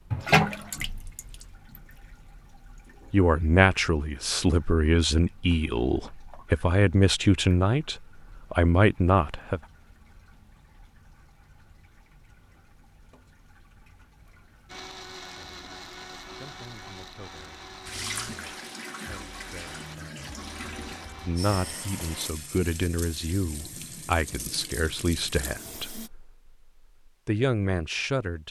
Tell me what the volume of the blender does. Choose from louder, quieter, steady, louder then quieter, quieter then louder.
steady.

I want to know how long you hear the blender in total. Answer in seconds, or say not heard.
8 s.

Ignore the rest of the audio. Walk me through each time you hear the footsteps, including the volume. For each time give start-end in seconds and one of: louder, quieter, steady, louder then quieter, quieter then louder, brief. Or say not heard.
not heard.